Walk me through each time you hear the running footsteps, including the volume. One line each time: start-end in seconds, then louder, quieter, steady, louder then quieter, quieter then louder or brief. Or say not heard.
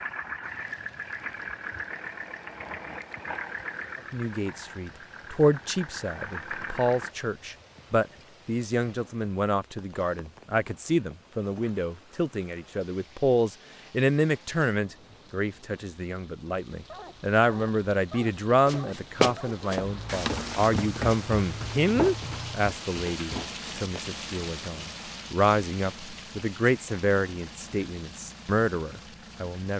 18.6-24.1 quieter.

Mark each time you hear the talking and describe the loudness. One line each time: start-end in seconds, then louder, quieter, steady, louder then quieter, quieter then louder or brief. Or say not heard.
4.1-29.7 steady.